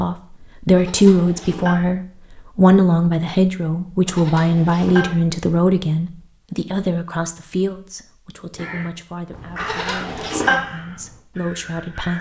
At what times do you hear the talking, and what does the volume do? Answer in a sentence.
You can hear the talking from 0.0 to 12.1 s, getting quieter.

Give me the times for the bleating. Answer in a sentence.
The bleating can be heard from 0.8 to 1.8 s, from 4.0 to 5.0 s and from 9.6 to 10.6 s.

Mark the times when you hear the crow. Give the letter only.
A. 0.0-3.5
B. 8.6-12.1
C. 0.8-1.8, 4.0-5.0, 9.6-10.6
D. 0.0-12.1
B.